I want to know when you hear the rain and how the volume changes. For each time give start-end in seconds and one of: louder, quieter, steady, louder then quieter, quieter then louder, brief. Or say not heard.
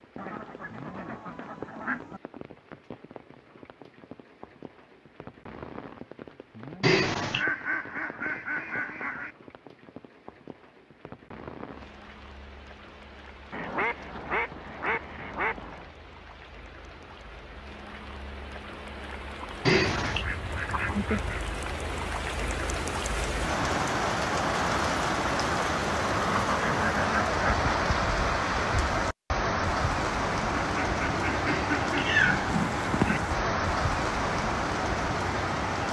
0.0-35.8 louder.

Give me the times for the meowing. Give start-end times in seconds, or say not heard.
6.8-7.5, 19.6-20.2, 31.4-33.2.